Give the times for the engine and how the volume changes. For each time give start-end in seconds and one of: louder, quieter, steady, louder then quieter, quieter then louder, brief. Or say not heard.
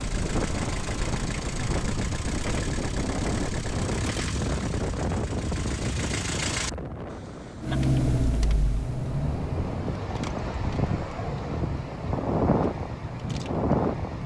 0.0-14.2 louder then quieter.